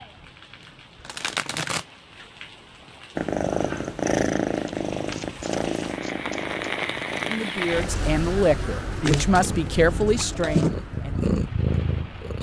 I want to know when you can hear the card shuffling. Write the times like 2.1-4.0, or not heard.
1.0-1.9, 4.9-6.5, 8.9-10.8.